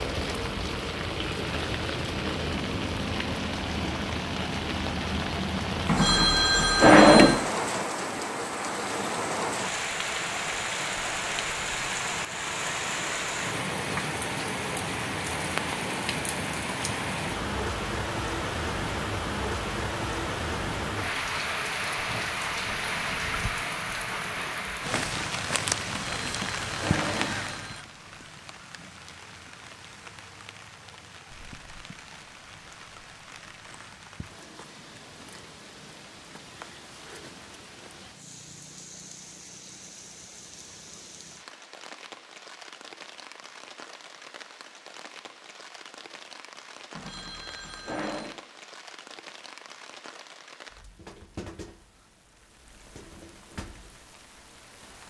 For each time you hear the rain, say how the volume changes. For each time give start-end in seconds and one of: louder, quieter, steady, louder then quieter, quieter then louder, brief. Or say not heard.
0.0-55.0 quieter.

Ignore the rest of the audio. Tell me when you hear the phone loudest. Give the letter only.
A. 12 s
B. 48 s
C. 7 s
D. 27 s
C.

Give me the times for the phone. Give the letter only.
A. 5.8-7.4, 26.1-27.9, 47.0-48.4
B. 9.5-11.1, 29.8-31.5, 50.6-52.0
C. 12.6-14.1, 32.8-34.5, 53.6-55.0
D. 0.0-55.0
A.